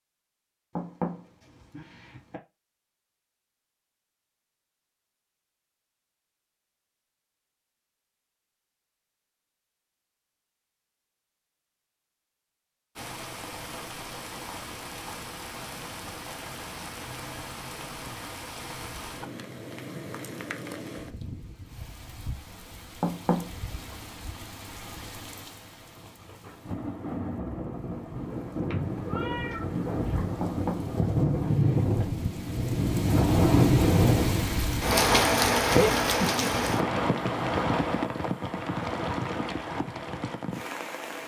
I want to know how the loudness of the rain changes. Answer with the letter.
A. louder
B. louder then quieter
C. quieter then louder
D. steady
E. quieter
A.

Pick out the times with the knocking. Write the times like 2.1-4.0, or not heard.
0.8-2.4, 23.0-23.5, 30.4-32.0.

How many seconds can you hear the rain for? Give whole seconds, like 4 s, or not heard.
28 s.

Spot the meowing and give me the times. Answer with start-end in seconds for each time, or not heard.
28.6-30.2.